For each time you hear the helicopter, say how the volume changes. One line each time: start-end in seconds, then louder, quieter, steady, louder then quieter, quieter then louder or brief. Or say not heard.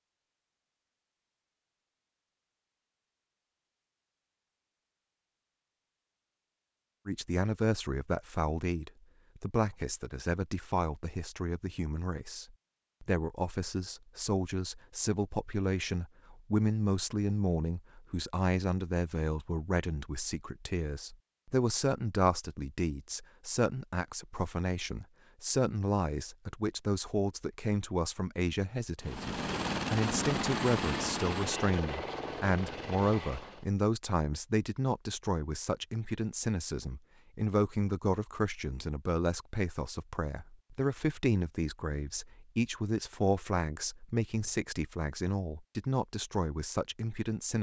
29.0-33.7 quieter.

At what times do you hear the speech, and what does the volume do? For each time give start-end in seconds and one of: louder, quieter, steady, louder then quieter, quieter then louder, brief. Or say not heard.
7.0-47.5 steady.